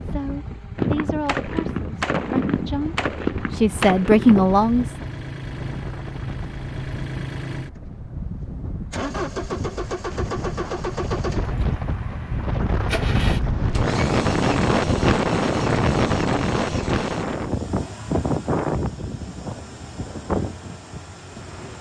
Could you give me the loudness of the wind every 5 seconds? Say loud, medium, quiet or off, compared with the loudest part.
quiet, quiet, loud, loud, medium.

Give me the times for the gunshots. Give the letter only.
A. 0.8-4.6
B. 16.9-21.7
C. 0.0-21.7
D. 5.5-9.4
A.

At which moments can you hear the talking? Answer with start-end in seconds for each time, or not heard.
0.0-4.8.